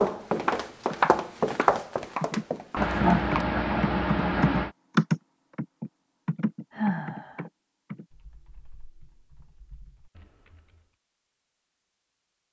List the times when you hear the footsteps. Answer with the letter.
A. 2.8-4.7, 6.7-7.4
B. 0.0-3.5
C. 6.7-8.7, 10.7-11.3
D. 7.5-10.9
B.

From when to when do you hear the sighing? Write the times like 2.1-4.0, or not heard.
2.8-4.7, 6.7-7.4.